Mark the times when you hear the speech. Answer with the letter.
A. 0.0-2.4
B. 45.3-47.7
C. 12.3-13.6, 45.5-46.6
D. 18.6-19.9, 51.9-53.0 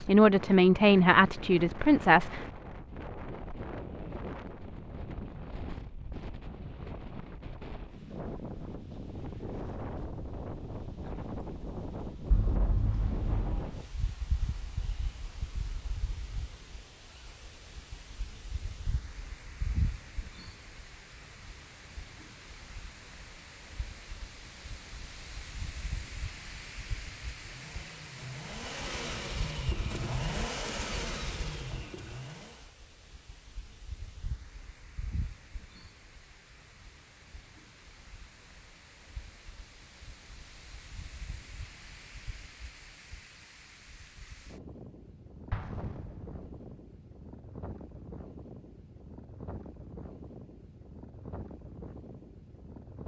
A.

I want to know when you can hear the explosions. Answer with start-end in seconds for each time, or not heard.
12.3-13.6, 45.5-46.6.